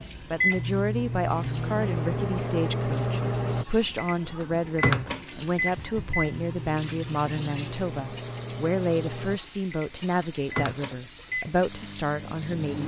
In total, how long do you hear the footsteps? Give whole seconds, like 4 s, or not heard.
not heard.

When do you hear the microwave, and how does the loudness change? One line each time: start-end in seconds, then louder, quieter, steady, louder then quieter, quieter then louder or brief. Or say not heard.
0.0-12.8 quieter.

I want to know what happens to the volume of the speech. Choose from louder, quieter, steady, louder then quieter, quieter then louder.
steady.